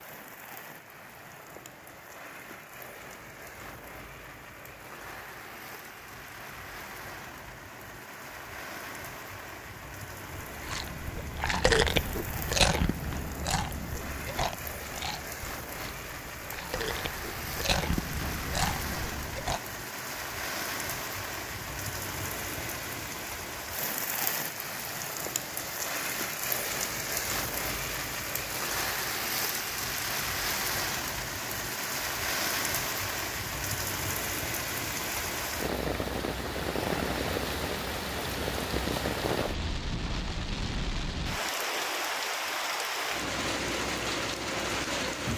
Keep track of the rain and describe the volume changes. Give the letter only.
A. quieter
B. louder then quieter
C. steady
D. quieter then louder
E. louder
E.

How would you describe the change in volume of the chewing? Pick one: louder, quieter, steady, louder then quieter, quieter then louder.
quieter then louder.